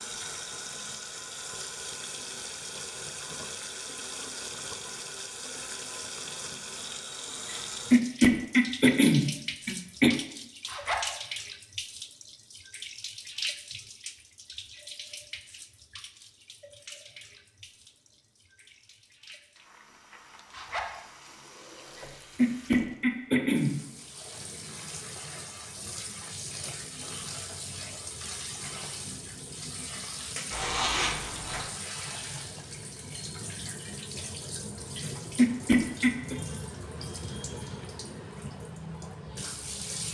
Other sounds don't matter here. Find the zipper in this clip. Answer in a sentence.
The zipper can be heard from 10.7 to 11.2 s, from 20.5 to 21.0 s and from 30.5 to 31.6 s.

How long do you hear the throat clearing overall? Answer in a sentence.
The throat clearing can be heard for 5 seconds in total.